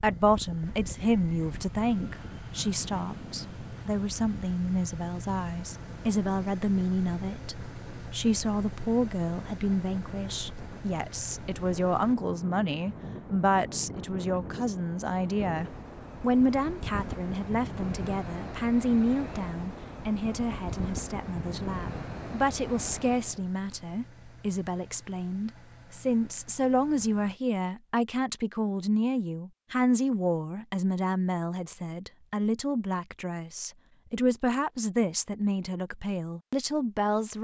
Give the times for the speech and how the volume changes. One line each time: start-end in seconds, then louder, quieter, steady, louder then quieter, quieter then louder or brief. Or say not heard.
0.0-37.3 steady.